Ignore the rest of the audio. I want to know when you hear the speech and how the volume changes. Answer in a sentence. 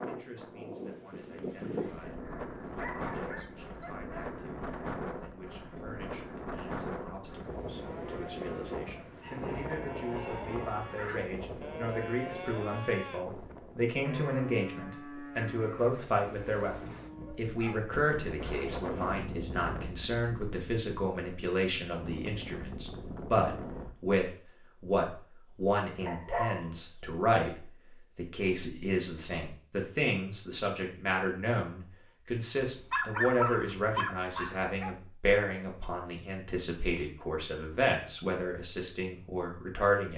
The speech can be heard from 0.1 to 40.1 s, getting louder.